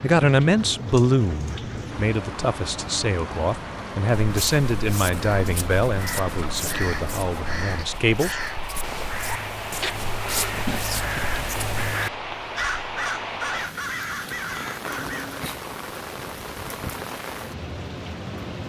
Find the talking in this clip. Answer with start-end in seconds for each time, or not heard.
0.0-8.4.